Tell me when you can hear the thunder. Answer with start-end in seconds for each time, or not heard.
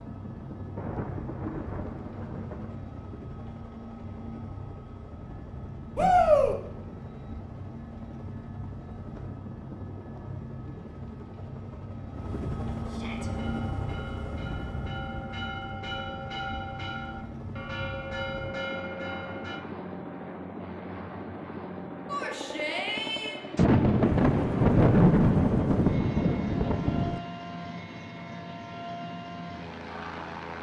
0.8-2.8, 23.6-27.2.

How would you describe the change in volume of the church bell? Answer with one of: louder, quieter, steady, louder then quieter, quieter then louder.
louder.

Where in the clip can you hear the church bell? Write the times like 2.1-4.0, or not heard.
13.2-19.6.